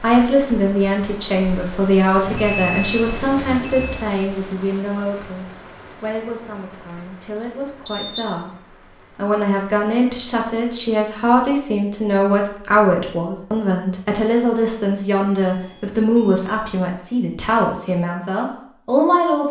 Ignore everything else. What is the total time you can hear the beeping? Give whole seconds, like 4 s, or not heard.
4 s.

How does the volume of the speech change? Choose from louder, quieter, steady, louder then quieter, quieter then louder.
quieter then louder.